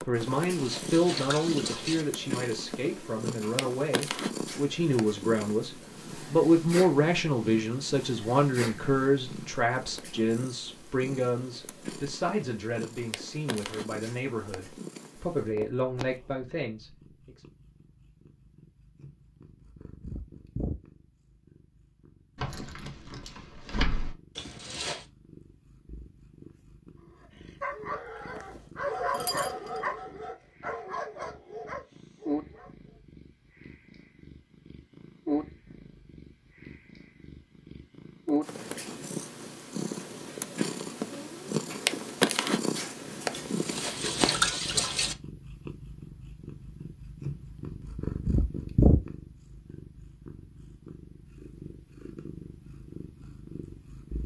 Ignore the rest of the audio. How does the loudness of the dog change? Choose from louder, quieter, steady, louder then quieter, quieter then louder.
louder then quieter.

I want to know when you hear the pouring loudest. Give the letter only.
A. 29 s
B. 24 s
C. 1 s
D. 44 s
D.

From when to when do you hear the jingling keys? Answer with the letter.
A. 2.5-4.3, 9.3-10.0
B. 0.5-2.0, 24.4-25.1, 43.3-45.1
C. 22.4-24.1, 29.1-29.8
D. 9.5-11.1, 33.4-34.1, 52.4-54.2
C.